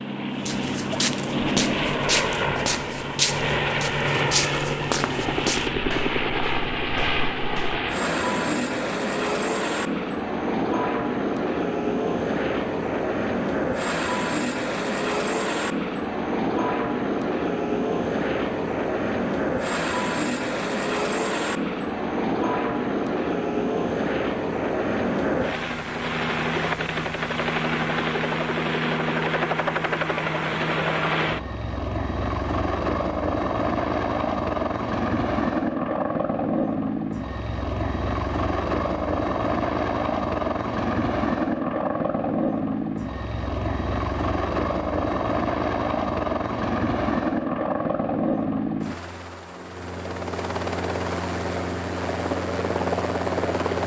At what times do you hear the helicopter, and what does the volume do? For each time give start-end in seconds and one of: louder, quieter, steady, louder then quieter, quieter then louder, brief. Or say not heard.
0.0-53.8 steady.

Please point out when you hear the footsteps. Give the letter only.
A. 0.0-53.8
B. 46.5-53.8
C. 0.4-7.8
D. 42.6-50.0
C.